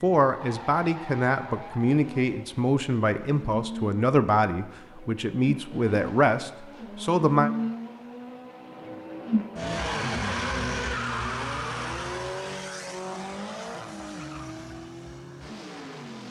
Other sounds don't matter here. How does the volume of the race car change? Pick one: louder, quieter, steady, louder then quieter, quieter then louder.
louder then quieter.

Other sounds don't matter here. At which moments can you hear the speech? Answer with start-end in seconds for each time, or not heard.
0.0-7.5.